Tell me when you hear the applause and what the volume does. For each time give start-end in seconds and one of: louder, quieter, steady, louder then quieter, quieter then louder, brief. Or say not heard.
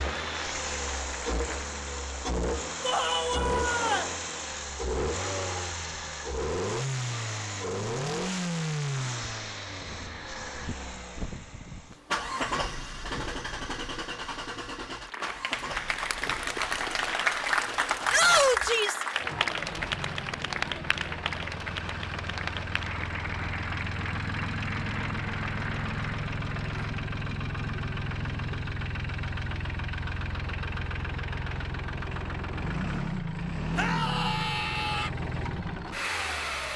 0.1-1.8 brief
15.0-27.1 quieter.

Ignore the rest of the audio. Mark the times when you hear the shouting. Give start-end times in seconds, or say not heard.
2.8-4.2, 18.1-19.1, 33.8-35.1.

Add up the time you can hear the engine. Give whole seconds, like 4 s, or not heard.
37 s.